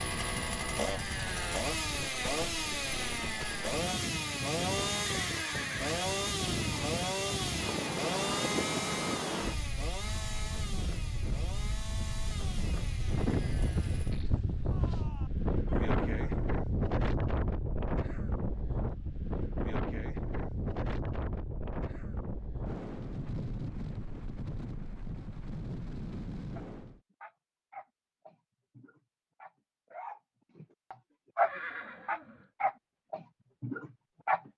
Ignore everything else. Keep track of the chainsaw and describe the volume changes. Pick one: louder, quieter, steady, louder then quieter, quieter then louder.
quieter.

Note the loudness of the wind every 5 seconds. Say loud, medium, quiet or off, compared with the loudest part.
medium, loud, loud, loud, medium, medium, off.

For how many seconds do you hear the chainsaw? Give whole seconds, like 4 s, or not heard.
14 s.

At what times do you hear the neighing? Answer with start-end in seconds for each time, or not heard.
5.0-6.0, 14.7-16.5, 31.4-32.5.